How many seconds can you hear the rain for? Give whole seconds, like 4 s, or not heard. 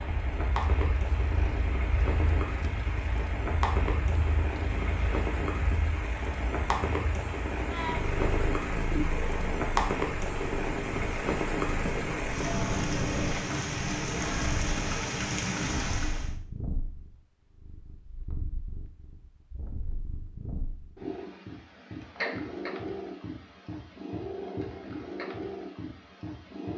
16 s.